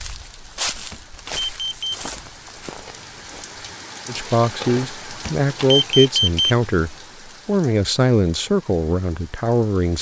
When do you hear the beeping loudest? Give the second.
6 s.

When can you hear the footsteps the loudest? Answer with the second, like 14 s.
1 s.